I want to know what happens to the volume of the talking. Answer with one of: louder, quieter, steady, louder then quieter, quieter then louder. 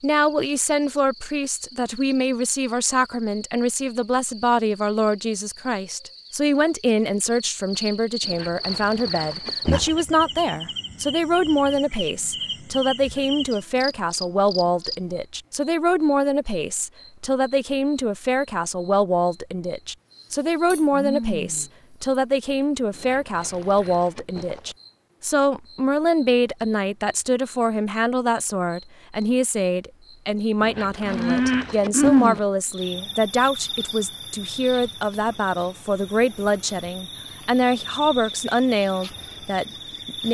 steady.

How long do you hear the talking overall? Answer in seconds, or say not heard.
40 s.